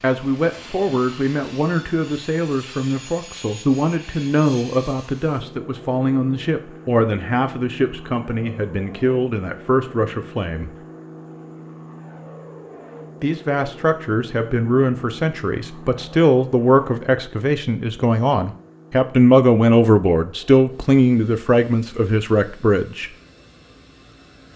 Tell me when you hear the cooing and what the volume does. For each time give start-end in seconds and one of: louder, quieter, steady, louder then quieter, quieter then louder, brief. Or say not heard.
not heard.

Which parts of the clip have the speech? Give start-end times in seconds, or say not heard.
0.0-10.7, 13.2-23.1.